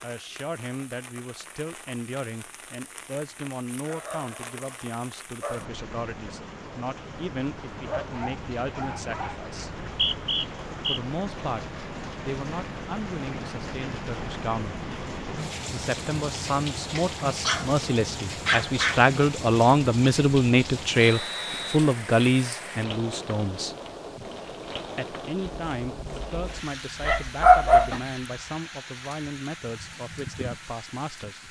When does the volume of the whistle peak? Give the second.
10 s.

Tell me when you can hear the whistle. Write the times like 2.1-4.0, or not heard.
9.8-11.0, 21.0-22.5.